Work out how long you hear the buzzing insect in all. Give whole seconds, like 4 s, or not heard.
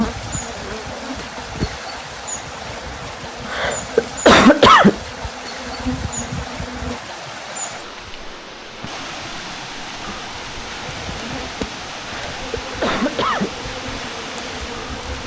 12 s.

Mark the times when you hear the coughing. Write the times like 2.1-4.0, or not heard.
3.5-5.0, 12.0-13.6.